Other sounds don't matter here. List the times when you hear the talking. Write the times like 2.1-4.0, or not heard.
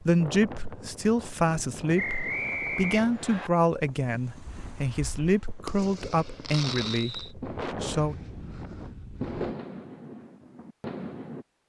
0.1-8.2.